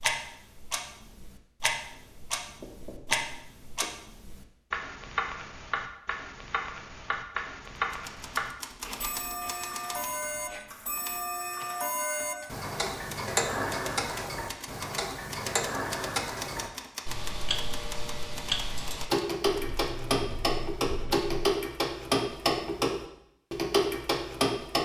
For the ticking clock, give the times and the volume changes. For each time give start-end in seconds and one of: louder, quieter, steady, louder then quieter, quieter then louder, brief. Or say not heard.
0.0-24.8 louder.